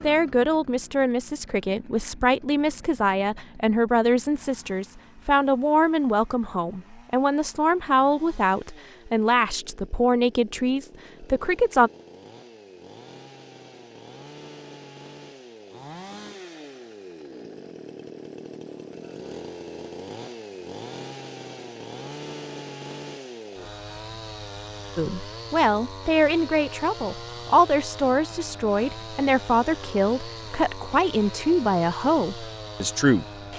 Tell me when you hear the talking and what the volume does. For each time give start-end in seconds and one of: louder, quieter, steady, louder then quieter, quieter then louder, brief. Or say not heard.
0.0-11.9 steady
24.9-33.2 steady.